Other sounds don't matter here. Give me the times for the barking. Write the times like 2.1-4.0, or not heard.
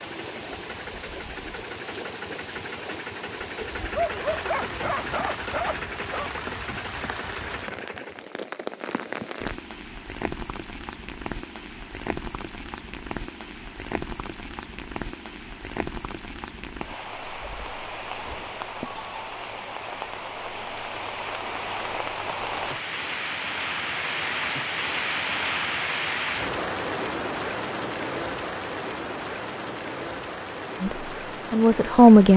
4.0-6.3.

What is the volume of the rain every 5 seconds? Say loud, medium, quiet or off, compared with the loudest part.
medium, medium, medium, medium, loud, loud, medium.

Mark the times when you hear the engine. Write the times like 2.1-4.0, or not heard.
0.0-8.2.